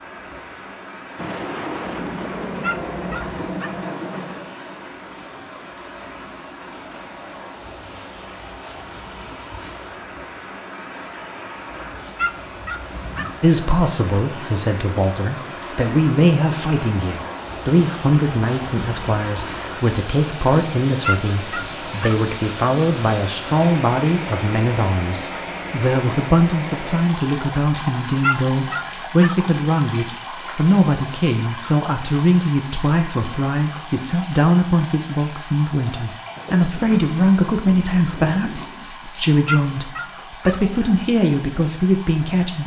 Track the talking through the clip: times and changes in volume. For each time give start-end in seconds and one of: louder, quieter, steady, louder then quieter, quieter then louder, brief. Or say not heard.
13.4-42.6 steady.